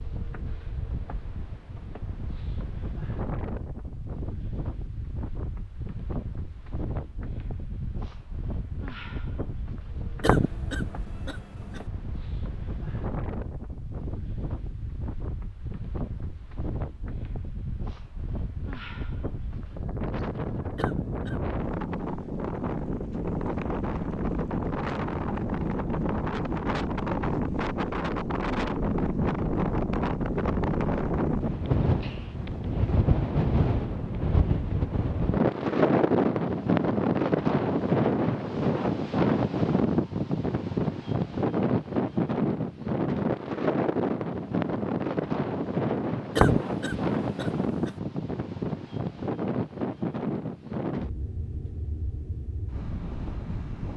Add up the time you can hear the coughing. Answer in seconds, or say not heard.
4 s.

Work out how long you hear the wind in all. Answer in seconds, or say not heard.
54 s.